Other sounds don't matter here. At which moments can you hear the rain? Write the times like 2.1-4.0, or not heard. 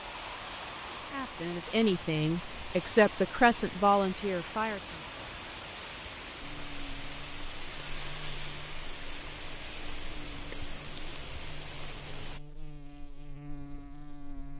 0.0-12.4.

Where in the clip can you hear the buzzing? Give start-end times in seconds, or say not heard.
6.4-14.5.